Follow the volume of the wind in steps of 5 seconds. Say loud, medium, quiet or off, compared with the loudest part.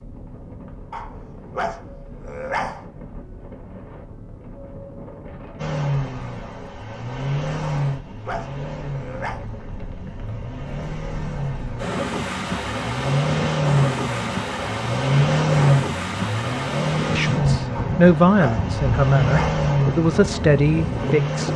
quiet, quiet, loud, loud, loud.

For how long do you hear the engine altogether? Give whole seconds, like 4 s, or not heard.
16 s.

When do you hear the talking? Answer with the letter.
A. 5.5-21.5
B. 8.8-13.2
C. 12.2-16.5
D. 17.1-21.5
D.